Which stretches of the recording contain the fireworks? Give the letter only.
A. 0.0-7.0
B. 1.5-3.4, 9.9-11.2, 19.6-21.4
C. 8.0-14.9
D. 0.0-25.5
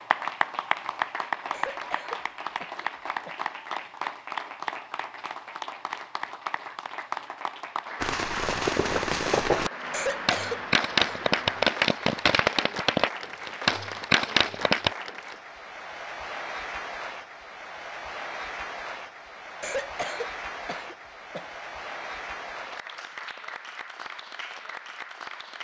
C.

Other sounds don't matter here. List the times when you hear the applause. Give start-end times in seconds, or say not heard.
0.0-25.5.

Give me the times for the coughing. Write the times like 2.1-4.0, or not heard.
1.5-3.4, 9.9-11.2, 19.6-21.4.